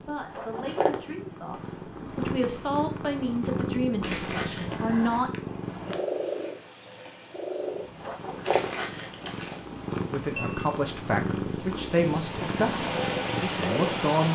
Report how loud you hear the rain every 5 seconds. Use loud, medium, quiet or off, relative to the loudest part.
off, quiet, loud.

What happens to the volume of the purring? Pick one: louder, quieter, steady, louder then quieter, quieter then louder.
steady.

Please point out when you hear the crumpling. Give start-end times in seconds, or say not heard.
4.0-4.8, 8.4-9.6.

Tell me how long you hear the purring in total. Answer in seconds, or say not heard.
14 s.